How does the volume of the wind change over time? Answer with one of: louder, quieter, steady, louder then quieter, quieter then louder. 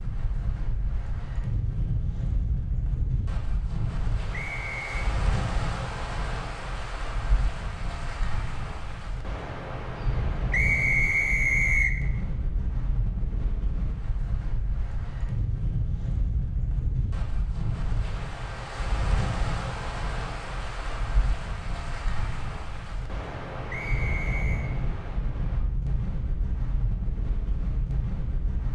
steady.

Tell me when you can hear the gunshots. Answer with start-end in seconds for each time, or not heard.
not heard.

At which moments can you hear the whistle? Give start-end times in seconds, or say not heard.
4.3-4.9, 10.5-11.9, 23.7-24.7.